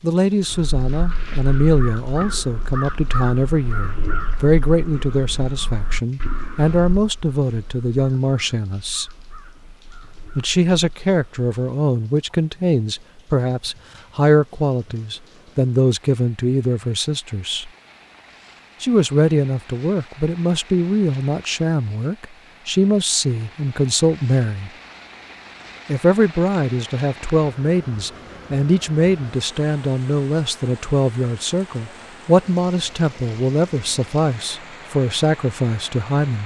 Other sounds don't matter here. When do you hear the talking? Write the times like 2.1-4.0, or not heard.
0.0-9.1, 10.3-17.7, 18.8-24.7, 25.9-36.4.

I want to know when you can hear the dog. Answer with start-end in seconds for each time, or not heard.
not heard.